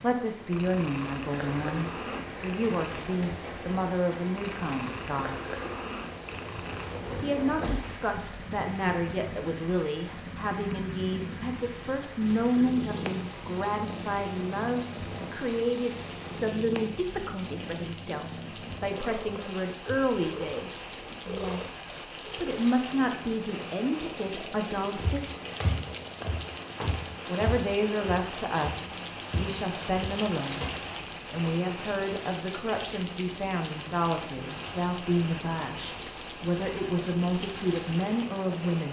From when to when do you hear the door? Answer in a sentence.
The door can be heard from 6.3 to 8.0 s.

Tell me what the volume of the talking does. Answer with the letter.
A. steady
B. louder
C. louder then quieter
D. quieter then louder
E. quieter
A.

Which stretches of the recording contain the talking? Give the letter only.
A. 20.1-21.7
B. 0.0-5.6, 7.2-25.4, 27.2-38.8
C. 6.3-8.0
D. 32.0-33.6
B.